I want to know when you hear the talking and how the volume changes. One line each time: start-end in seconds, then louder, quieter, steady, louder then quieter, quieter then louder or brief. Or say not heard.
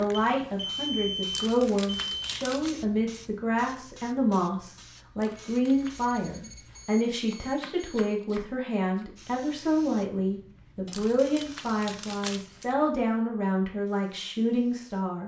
0.0-15.2 steady.